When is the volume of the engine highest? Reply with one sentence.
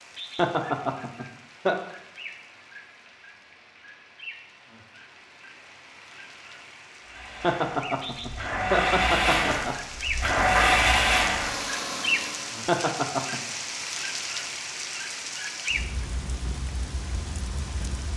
The loudest moment of the engine is at 11 seconds.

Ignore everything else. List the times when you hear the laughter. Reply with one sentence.
The laughter can be heard from 0.3 to 1.8 s, from 7.4 to 9.8 s and from 12.7 to 13.4 s.